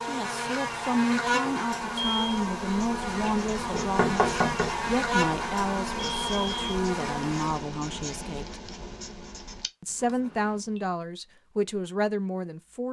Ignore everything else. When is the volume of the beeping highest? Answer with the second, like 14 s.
2 s.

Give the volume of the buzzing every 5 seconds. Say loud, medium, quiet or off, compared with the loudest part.
loud, loud, off.